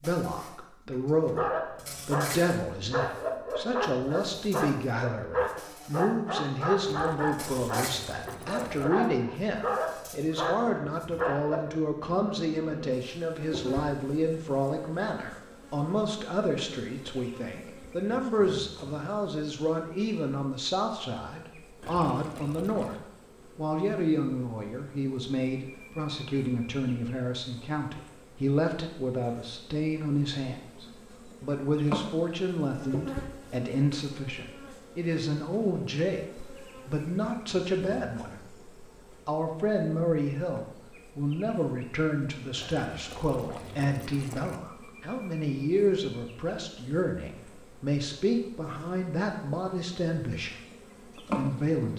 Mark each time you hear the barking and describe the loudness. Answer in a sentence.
You can hear the barking from 1.4 to 11.8 s, at a steady volume.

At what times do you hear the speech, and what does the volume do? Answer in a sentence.
The speech can be heard from 0.0 to 22.9 s, at a steady volume; from 23.6 to 50.5 s, at a steady volume; and briefly from 51.4 to 51.9 s.